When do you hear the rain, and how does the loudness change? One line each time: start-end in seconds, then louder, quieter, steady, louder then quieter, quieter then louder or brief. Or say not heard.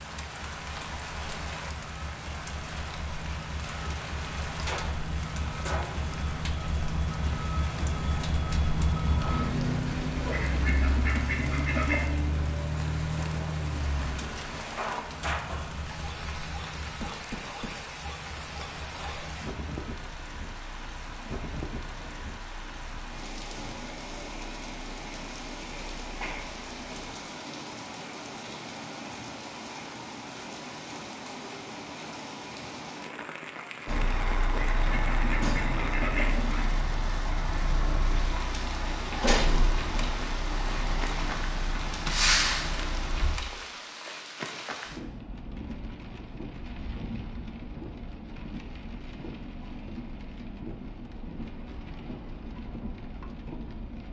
0.0-54.0 steady.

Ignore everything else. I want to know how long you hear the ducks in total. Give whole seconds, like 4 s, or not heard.
4 s.